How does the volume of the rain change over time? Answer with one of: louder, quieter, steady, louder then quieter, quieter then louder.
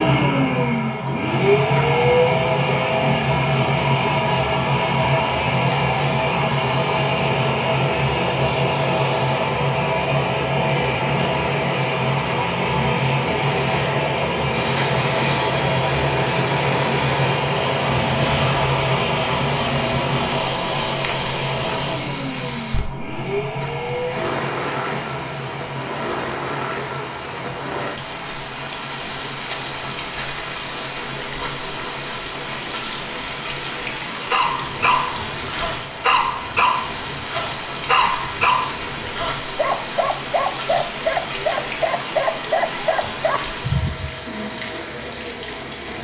steady.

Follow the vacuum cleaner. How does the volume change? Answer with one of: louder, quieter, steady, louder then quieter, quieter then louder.
quieter.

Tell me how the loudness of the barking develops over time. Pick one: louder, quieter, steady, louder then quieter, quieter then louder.
steady.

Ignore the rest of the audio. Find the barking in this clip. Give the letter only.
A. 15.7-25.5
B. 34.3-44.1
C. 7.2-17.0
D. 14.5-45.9
B.